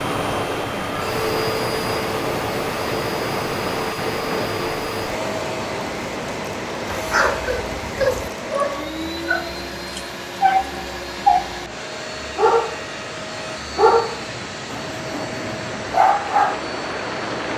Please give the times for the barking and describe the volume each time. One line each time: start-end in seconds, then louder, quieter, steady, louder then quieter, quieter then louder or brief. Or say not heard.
6.9-11.6 quieter then louder
12.3-12.8 brief
13.8-16.6 brief.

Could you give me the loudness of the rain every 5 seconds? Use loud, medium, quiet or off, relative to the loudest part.
loud, medium, medium, loud.